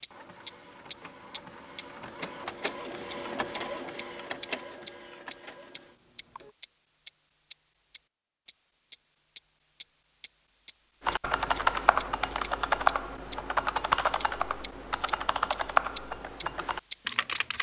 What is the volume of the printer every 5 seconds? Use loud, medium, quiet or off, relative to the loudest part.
loud, medium, off, off.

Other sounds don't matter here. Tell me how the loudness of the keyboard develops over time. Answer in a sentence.
The volume of the keyboard goes down.